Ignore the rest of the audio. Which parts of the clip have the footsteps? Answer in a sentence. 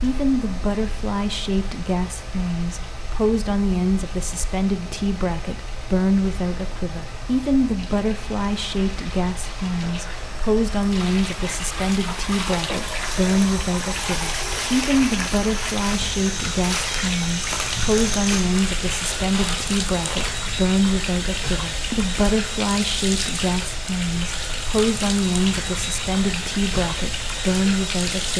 You can hear the footsteps from 13.1 to 20.4 s.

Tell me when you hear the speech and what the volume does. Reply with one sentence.
The speech can be heard from 0.0 to 28.3 s, at a steady volume.